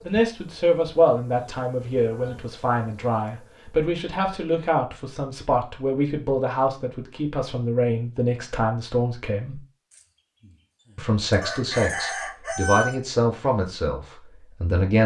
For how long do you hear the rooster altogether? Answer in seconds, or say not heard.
2 s.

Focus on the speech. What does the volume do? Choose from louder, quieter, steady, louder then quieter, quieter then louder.
steady.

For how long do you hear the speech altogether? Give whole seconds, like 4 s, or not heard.
14 s.